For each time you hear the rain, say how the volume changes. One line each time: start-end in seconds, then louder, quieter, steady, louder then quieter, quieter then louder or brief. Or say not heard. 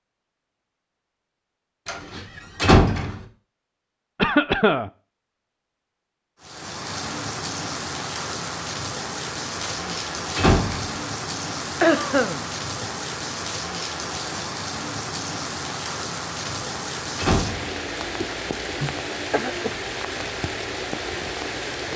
6.4-21.9 steady.